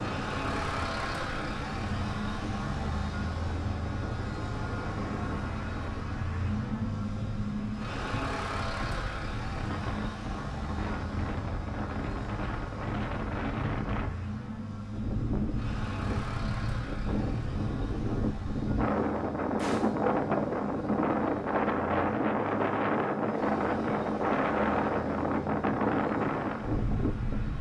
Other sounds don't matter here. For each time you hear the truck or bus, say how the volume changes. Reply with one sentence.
You can hear the truck or bus from 0.0 to 27.5 s, getting quieter.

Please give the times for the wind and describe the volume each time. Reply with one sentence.
The wind can be heard from 0.0 to 27.5 s, getting louder.